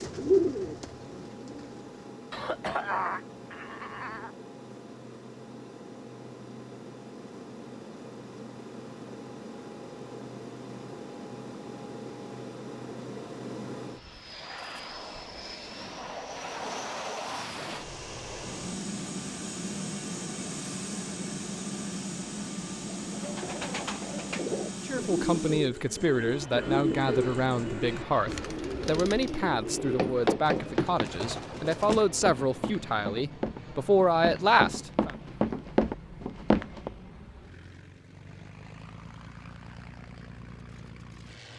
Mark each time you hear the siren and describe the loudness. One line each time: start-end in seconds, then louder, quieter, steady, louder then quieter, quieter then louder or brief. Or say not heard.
not heard.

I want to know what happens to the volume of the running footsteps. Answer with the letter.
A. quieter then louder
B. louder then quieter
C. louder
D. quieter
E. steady
A.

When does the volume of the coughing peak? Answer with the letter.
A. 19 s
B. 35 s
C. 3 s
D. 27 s
C.